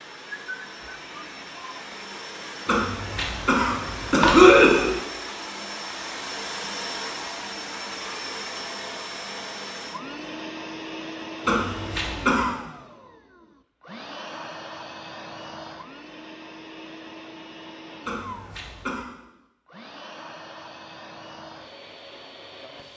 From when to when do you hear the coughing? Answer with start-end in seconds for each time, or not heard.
2.6-4.9, 11.4-12.5, 18.1-19.1.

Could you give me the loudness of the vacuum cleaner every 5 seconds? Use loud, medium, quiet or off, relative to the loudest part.
loud, loud, loud, medium, medium.